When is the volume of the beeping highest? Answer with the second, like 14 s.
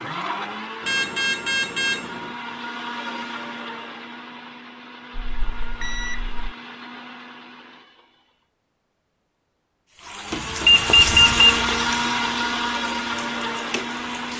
11 s.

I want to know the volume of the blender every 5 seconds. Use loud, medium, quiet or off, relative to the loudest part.
medium, quiet, loud.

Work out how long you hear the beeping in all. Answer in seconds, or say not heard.
4 s.